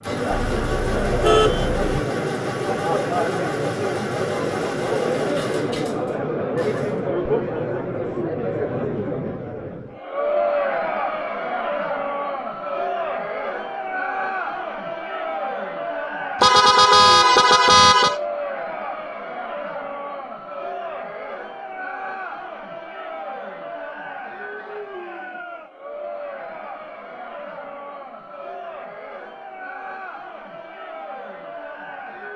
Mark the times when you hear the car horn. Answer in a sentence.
You can hear the car horn from 0.3 to 1.9 s and from 16.4 to 18.2 s.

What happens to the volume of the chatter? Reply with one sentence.
The loudness of the chatter goes down.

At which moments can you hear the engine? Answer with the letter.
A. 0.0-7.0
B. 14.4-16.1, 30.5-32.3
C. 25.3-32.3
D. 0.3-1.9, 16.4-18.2
A.